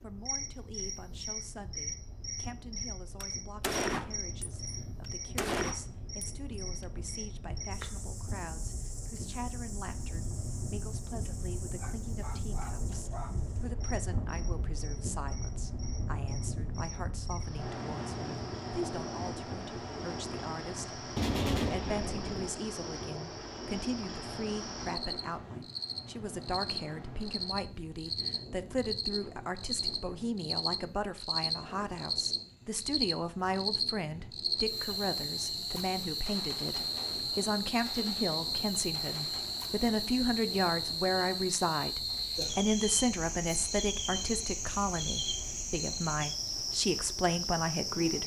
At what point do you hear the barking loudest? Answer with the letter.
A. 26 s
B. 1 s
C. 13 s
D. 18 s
C.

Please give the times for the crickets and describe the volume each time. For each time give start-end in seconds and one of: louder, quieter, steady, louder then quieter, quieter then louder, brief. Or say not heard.
0.0-48.2 quieter then louder.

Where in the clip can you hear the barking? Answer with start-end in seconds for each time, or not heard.
11.8-13.7.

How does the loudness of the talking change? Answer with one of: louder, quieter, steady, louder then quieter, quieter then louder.
louder.